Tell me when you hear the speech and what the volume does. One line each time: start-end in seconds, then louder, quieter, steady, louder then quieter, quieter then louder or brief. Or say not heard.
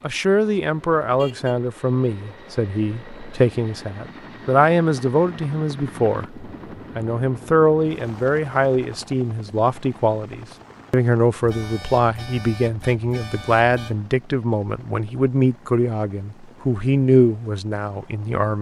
0.0-18.5 steady.